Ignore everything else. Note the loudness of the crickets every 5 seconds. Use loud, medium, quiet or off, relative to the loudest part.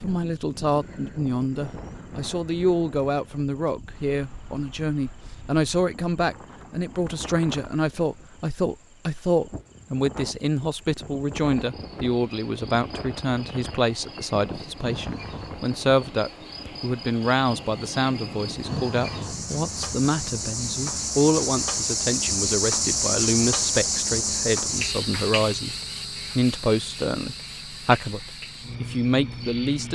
quiet, quiet, quiet, medium, loud, medium.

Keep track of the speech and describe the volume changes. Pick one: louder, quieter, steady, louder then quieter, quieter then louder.
steady.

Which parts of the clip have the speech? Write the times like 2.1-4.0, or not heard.
0.0-25.8, 26.4-29.9.